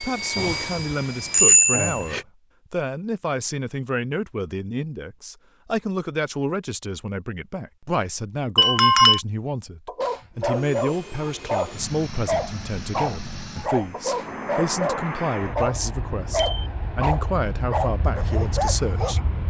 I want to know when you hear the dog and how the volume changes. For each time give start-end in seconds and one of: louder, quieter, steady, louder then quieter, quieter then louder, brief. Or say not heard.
9.8-19.2 steady.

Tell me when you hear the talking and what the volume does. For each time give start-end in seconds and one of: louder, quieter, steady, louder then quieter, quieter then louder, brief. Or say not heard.
0.0-19.4 steady.